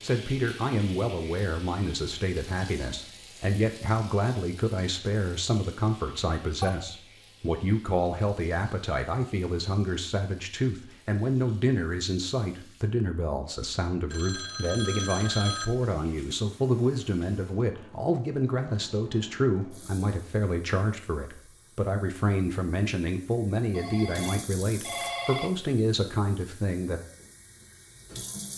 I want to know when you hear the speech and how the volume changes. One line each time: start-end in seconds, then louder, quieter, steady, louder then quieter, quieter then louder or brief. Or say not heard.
0.0-27.0 steady.